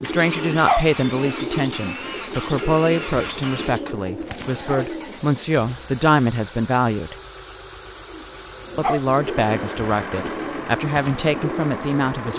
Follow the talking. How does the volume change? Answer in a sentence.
The volume of the talking stays about the same.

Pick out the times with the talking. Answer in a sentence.
You can hear the talking from 0.0 to 7.2 s and from 8.8 to 12.3 s.